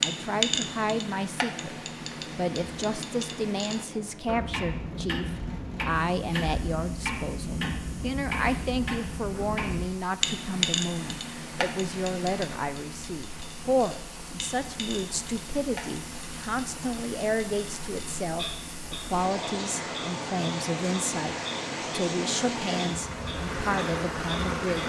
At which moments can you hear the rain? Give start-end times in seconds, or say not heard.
0.2-24.8.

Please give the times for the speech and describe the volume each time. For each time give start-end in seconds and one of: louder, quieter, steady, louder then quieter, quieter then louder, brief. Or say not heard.
0.0-24.8 steady.